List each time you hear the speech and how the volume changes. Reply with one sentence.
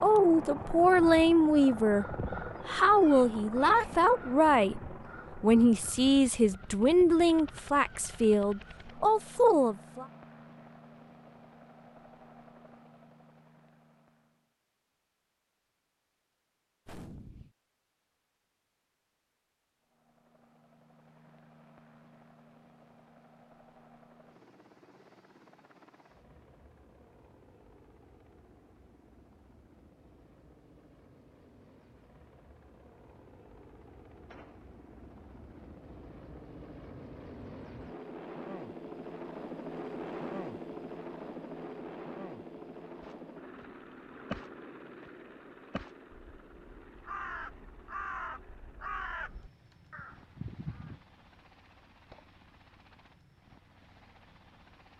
The speech can be heard from 0.0 to 10.1 s, at a steady volume.